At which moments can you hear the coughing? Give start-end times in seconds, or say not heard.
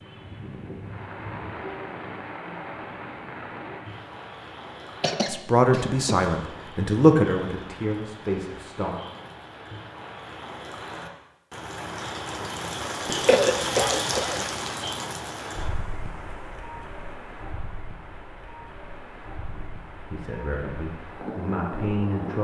5.0-6.2, 13.2-14.4.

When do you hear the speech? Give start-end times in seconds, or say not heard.
5.2-8.9, 19.5-22.3.